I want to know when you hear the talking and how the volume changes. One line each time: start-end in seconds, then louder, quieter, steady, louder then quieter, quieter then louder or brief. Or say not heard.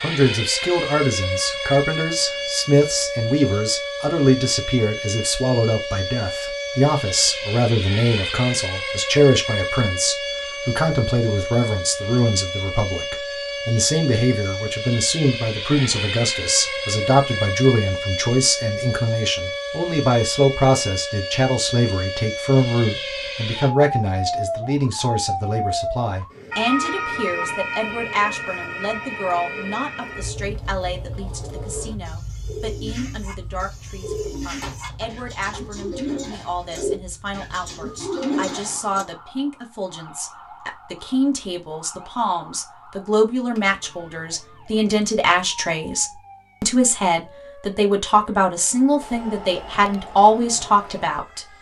0.0-51.4 quieter then louder.